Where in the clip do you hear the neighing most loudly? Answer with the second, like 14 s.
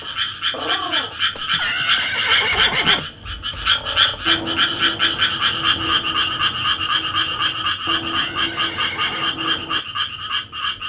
2 s.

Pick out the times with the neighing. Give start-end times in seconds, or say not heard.
1.4-3.0, 8.1-9.3.